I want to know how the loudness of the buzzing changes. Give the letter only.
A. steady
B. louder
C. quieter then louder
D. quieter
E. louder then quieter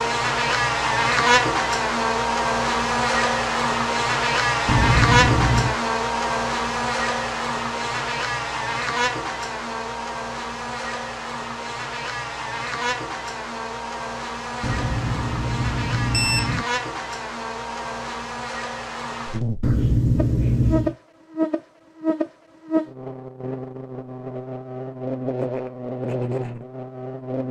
D.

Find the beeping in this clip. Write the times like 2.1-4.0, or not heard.
4.7-5.8, 14.6-16.6, 19.6-20.9.